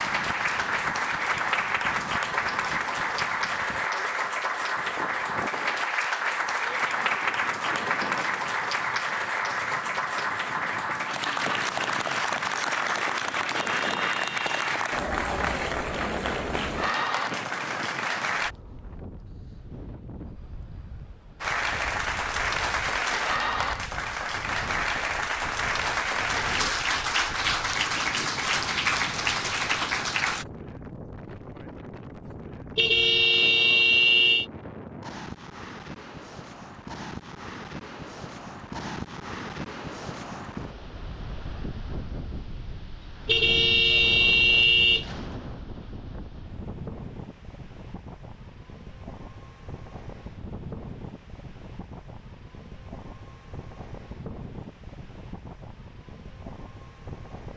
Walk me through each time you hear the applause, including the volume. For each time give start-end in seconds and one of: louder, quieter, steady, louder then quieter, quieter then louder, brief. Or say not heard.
0.0-18.6 steady
21.4-30.4 steady.